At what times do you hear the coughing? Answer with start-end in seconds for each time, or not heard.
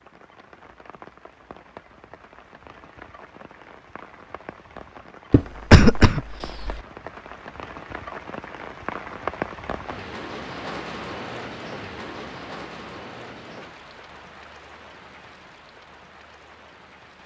5.3-6.8.